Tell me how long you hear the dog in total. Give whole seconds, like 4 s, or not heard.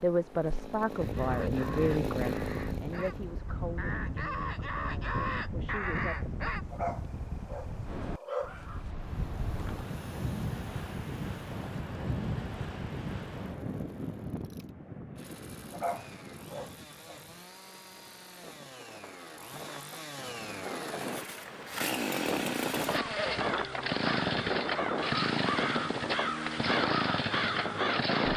4 s.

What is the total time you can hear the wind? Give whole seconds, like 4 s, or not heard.
28 s.